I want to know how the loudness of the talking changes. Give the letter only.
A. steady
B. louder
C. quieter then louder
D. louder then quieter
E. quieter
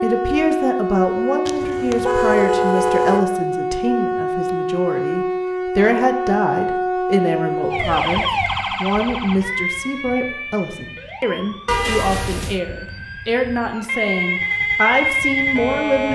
A.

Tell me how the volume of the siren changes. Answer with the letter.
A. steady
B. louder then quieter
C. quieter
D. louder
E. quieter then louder
E.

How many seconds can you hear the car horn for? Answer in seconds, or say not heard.
3 s.